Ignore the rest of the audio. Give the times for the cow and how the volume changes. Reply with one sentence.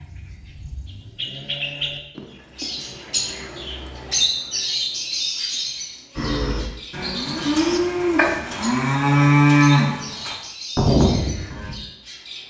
The cow can be heard from 6.2 to 11.7 s, getting louder.